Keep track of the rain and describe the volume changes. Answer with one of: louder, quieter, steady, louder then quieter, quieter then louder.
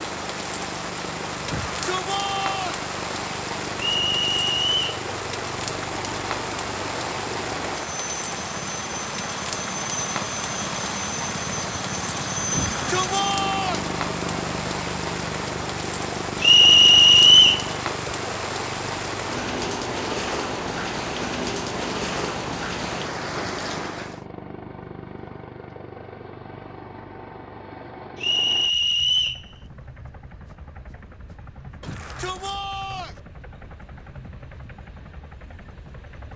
steady.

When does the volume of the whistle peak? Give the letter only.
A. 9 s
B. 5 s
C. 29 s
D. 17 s
D.